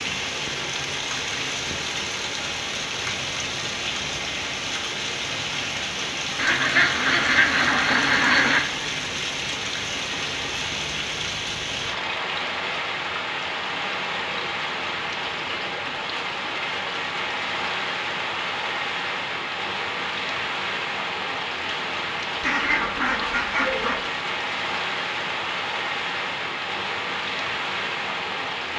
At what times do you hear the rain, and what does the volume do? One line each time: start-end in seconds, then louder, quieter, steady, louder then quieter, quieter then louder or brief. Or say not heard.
0.0-28.7 steady.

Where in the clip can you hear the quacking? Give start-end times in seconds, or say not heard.
6.3-8.7, 22.4-24.0.